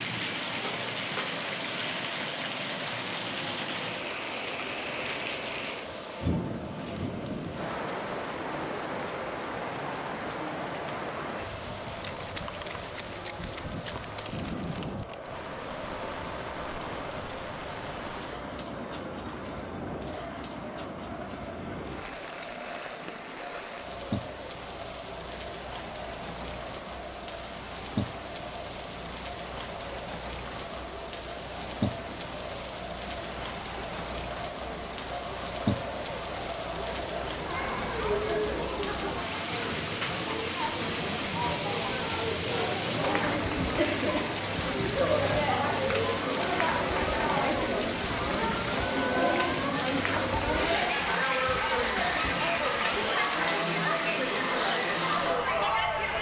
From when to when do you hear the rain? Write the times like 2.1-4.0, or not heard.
0.0-56.1.